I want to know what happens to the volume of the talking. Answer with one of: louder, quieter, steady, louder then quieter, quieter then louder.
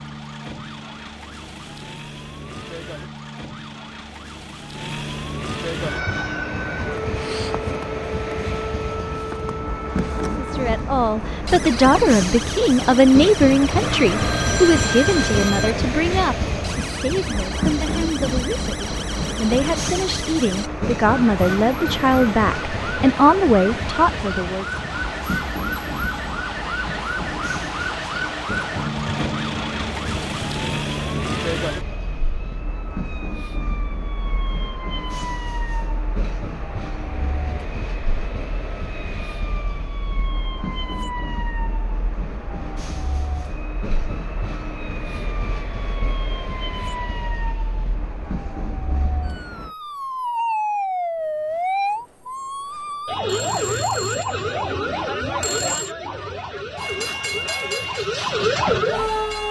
quieter then louder.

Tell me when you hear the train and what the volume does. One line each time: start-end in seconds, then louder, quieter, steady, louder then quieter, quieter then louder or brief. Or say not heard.
5.8-49.8 quieter
56.8-59.4 brief.